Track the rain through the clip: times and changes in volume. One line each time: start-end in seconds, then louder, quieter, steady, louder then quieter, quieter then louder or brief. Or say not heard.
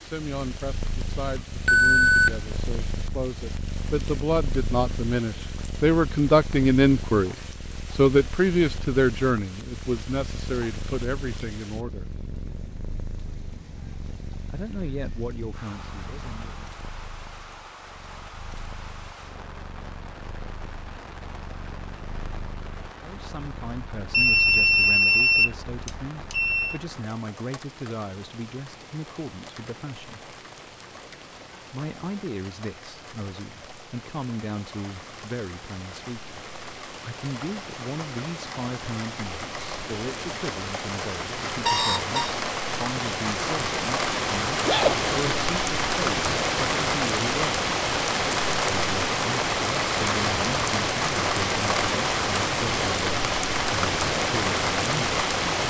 0.0-55.6 louder.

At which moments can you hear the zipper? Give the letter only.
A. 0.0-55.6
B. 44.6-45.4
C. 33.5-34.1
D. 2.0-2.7
B.